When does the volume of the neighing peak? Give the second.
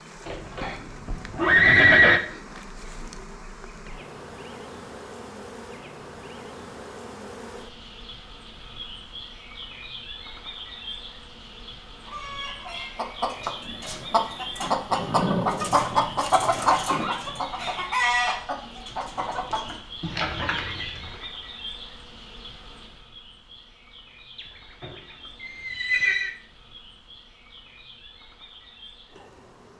2 s.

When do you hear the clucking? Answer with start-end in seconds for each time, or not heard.
12.1-21.2.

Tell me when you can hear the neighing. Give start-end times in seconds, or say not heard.
0.2-2.2, 14.8-17.2, 24.4-26.3.